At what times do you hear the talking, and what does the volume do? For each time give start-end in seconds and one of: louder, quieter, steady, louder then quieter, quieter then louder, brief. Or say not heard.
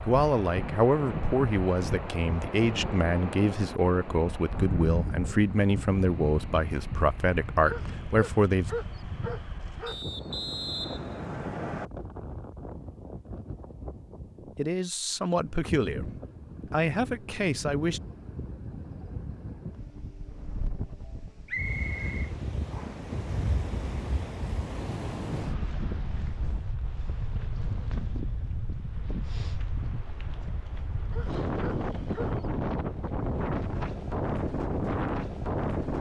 0.0-8.7 steady
14.6-16.1 brief
16.7-18.0 brief.